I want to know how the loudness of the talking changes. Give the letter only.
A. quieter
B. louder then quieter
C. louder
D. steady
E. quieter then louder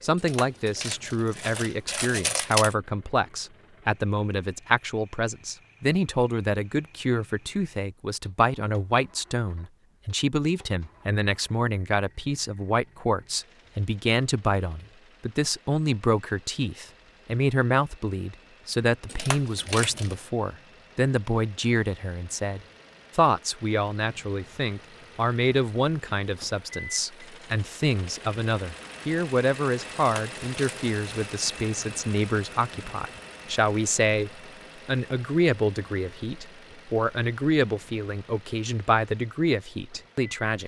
D.